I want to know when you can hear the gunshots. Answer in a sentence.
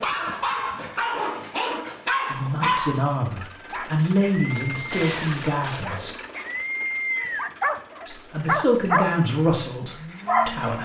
The gunshots can be heard from 4.9 to 6.7 s.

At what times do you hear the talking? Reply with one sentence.
You can hear the talking from 2.3 to 6.2 s and from 8.1 to 10.8 s.